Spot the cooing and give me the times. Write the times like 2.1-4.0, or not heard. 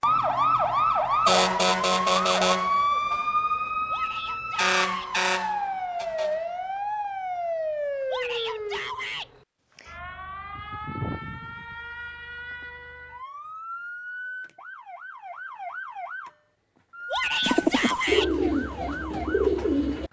17.4-20.0.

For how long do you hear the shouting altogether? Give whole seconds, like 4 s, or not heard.
4 s.